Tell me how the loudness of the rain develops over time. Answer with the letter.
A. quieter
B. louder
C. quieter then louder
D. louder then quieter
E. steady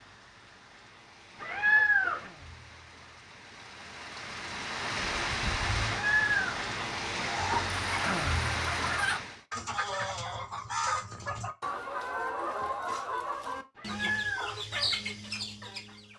B.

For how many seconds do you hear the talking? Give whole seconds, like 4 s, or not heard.
not heard.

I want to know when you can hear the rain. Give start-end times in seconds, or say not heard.
0.0-9.4.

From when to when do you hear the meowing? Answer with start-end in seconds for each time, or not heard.
1.4-2.3, 6.0-6.5, 13.8-14.7.